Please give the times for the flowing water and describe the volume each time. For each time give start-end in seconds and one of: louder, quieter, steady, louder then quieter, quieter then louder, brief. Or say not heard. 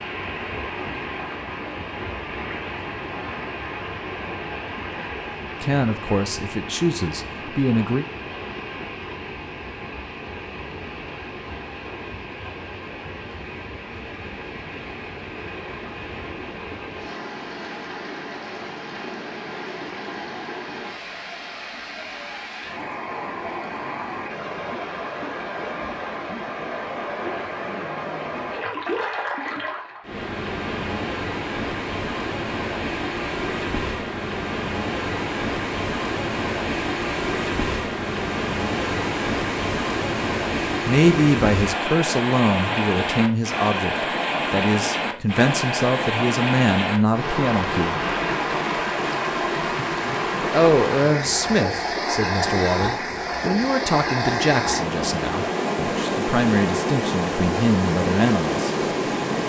0.0-59.4 louder.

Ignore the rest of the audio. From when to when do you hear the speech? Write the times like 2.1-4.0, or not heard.
5.6-8.1, 40.9-48.0, 50.5-58.7.